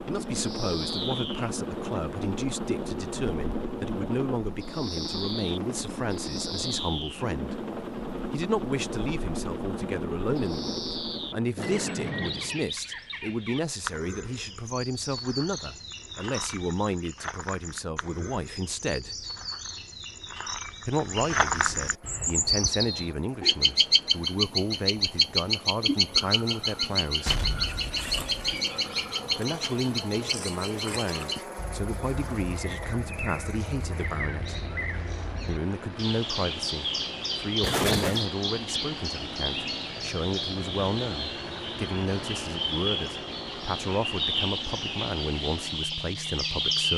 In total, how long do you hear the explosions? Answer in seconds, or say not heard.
3 s.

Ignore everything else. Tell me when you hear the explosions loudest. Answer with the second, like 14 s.
38 s.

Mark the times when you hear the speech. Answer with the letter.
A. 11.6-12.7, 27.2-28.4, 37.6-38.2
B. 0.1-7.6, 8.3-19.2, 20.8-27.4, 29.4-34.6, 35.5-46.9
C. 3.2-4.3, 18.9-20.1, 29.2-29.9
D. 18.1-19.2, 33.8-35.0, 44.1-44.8
B.